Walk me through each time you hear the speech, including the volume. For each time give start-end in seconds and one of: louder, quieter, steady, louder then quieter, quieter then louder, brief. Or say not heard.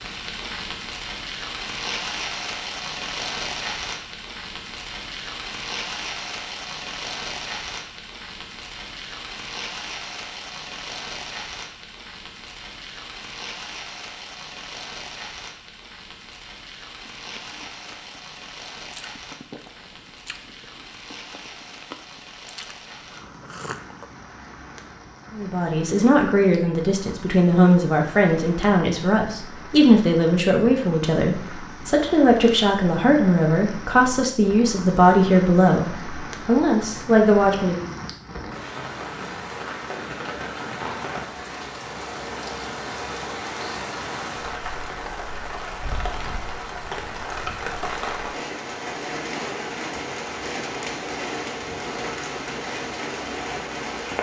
25.4-37.9 steady.